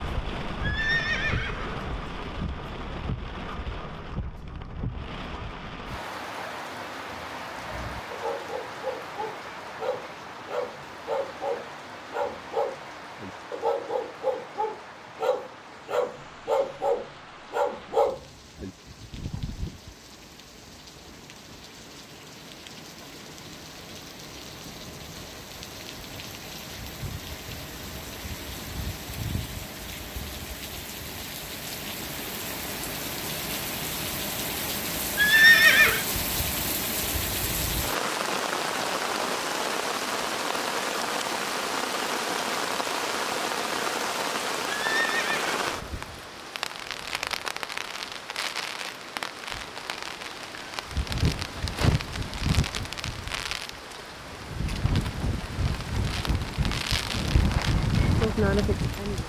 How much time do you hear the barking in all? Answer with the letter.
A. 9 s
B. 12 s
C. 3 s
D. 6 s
B.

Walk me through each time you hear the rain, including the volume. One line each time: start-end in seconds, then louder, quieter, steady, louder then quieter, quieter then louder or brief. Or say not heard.
0.0-59.2 quieter then louder.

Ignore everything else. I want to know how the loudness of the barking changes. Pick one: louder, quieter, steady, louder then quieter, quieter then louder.
louder.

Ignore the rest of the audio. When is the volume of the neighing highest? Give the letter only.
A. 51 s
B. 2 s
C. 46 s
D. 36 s
D.